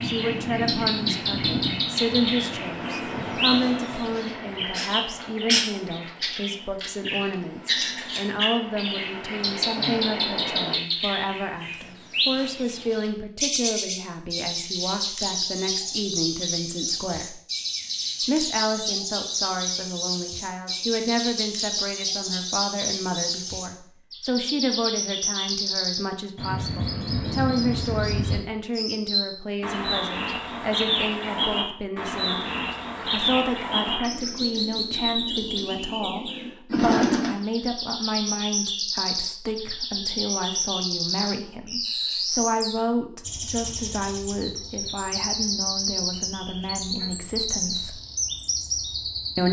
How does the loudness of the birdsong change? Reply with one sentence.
The volume of the birdsong stays about the same.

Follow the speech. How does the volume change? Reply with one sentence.
The volume of the speech stays about the same.